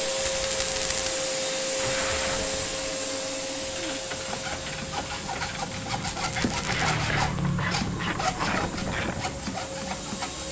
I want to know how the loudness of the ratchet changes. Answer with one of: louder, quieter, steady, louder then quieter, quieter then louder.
louder.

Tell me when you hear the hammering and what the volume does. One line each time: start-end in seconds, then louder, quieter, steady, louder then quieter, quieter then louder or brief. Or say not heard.
not heard.